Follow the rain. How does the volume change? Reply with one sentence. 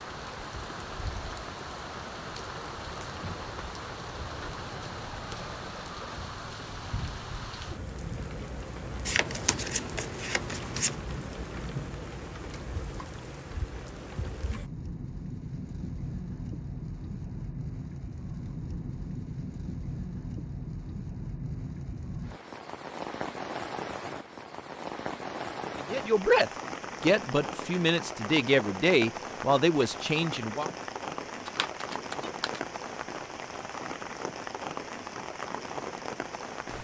The loudness of the rain stays about the same.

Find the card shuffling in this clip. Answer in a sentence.
You can hear the card shuffling from 9.1 to 10.9 s and from 31.4 to 32.6 s.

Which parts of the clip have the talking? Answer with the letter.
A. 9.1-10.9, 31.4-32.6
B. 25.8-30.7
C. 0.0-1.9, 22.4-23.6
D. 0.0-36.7
B.